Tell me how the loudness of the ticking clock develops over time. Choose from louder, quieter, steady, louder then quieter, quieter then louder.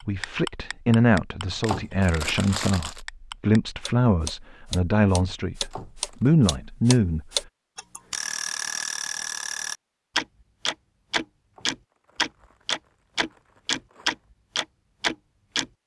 louder.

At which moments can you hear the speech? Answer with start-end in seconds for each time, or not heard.
0.1-7.2.